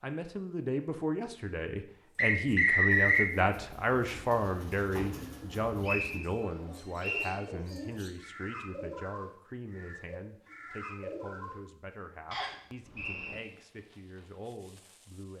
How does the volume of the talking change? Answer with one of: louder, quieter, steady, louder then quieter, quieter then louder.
quieter.